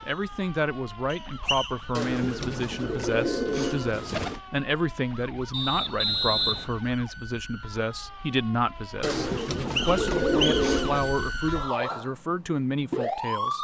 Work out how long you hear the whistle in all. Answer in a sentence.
You can hear the whistle for 3 seconds altogether.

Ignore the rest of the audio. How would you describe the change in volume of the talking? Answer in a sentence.
The loudness of the talking stays about the same.